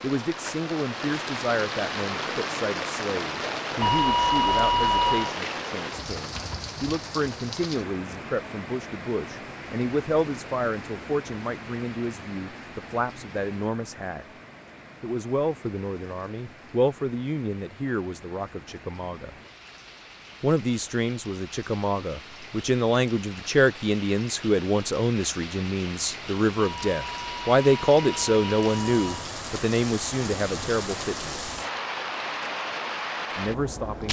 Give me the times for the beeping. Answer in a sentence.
You can hear the beeping from 3.8 to 5.3 s and from 26.6 to 29.2 s.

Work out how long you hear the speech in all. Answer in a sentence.
The speech can be heard for 30 seconds in total.